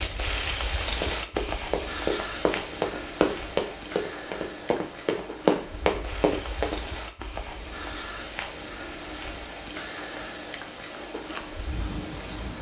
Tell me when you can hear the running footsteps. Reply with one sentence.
You can hear the running footsteps from 1.0 to 6.8 s.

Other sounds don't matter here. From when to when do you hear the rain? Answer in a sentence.
You can hear the rain from 0.0 to 12.5 s.